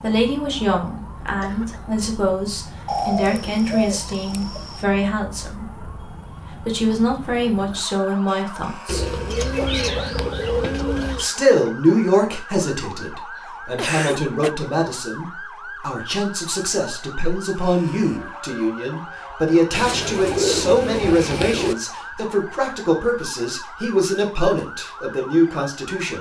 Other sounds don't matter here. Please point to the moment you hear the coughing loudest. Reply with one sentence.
The loudest moment of the coughing is at 14 seconds.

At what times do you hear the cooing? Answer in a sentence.
You can hear the cooing from 2.9 to 4.8 s, from 8.8 to 11.2 s and from 19.7 to 21.8 s.